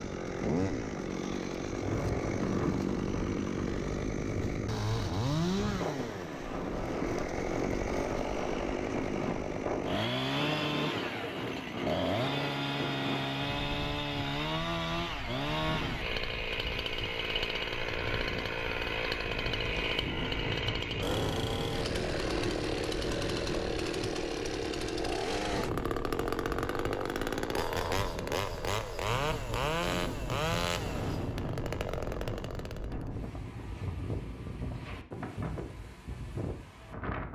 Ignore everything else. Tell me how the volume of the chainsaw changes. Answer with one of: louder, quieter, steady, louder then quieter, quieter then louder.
steady.